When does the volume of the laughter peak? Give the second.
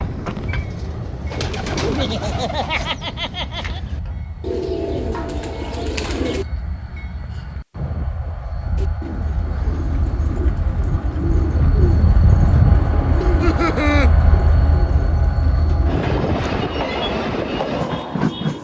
14 s.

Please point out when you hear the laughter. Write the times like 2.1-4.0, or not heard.
1.8-3.8, 13.2-14.1.